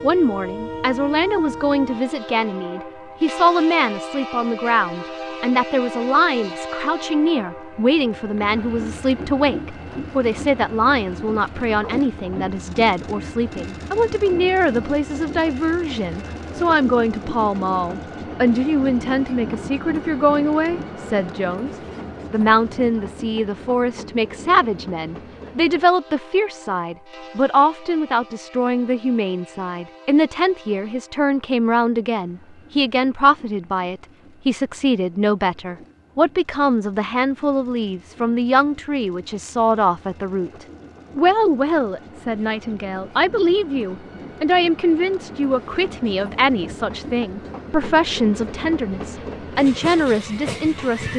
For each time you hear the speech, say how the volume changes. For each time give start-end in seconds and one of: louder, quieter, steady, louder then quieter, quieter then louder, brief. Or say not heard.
0.0-21.7 steady
22.3-51.1 steady.